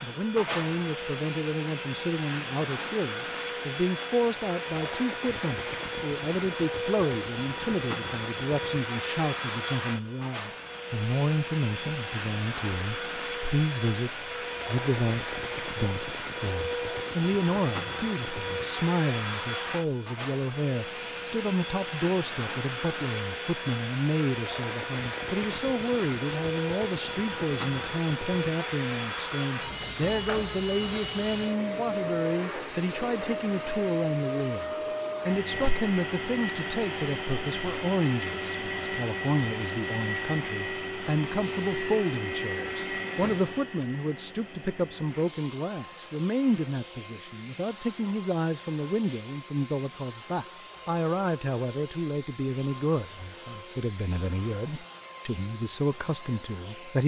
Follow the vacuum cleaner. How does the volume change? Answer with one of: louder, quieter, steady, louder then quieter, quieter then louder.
quieter.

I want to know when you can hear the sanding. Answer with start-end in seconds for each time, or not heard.
not heard.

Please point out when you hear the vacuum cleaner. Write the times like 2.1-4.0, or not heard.
0.0-57.0.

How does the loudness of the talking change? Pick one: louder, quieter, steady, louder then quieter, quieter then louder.
steady.